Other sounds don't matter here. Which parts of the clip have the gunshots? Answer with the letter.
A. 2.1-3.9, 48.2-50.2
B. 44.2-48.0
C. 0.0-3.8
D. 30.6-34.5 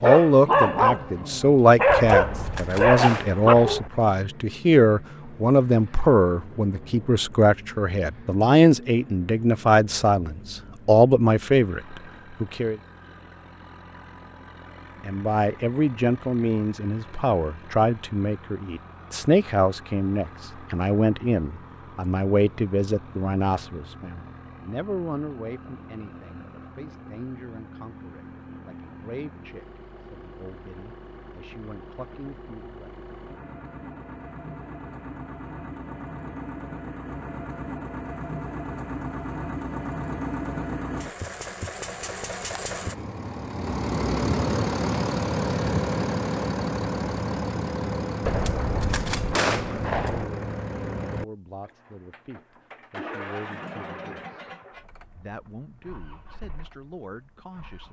A.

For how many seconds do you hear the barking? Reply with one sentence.
The barking can be heard for 4 seconds in total.